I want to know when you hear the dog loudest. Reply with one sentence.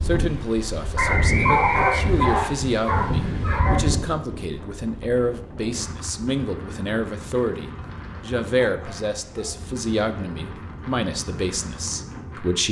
The loudest moment of the dog is at 2 seconds.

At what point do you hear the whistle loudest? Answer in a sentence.
The volume of the whistle peaks at 1 second.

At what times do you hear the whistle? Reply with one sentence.
The whistle can be heard from 0.9 to 2.5 s.